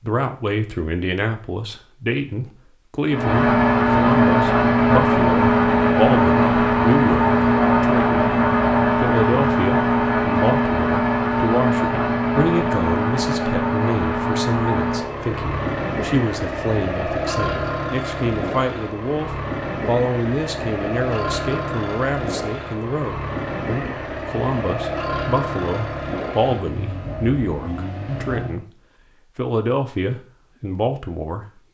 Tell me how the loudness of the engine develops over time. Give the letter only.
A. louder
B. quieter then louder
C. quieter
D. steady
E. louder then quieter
C.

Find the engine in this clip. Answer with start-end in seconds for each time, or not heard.
3.0-28.6.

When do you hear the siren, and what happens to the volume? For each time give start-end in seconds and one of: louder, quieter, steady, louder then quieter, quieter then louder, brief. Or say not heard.
not heard.